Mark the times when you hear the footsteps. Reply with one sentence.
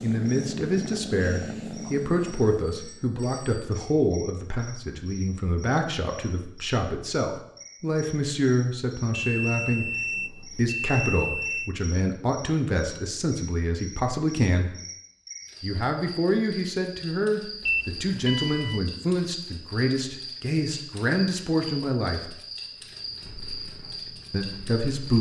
The footsteps can't be heard in this clip.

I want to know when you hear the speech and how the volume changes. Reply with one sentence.
The speech can be heard from 0.0 to 14.8 s, at a steady volume; from 15.6 to 22.4 s, at a steady volume; and briefly from 24.3 to 25.1 s.